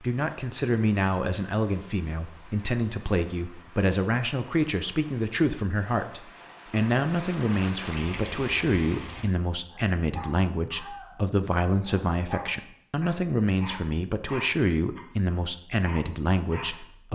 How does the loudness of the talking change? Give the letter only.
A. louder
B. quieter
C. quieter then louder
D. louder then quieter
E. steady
E.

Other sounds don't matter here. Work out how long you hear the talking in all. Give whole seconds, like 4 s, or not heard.
17 s.